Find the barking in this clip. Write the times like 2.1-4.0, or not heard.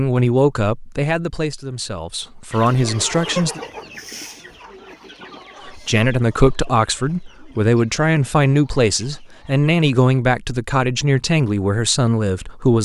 not heard.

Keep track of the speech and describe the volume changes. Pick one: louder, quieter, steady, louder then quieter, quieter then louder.
steady.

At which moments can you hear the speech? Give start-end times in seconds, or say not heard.
0.0-3.6, 5.7-12.8.